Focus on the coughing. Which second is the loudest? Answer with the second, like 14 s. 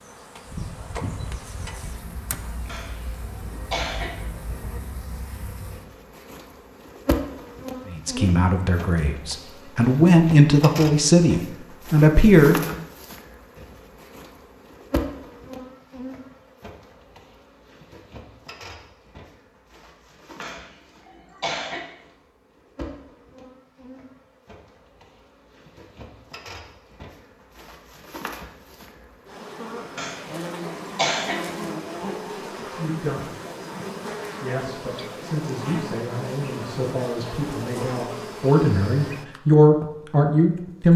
31 s.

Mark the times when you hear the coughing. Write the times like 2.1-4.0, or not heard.
2.6-4.2, 20.4-21.9, 29.9-31.4.